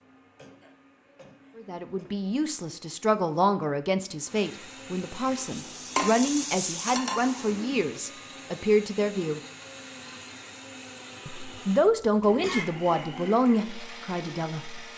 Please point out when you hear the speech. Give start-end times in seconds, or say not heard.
1.6-9.4, 11.2-14.8.